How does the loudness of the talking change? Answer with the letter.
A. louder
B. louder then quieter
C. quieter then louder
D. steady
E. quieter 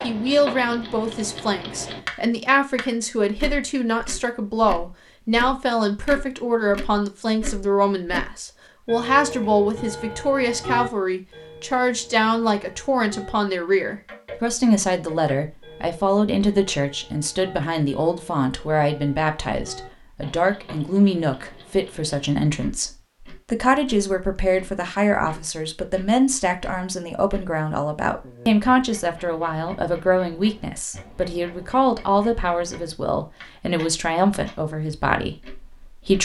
D.